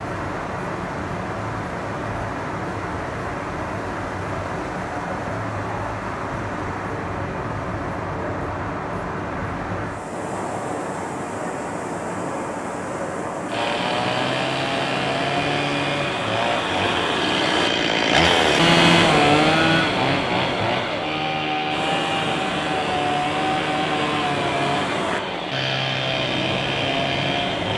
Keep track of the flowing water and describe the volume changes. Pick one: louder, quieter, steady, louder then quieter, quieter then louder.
steady.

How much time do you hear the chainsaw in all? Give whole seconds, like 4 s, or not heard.
14 s.